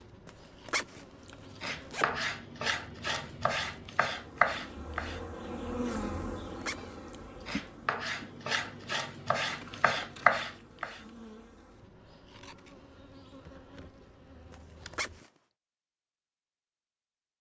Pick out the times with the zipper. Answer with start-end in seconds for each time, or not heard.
0.2-2.0, 6.2-7.0, 14.5-15.3.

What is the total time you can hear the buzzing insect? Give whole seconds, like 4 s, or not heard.
15 s.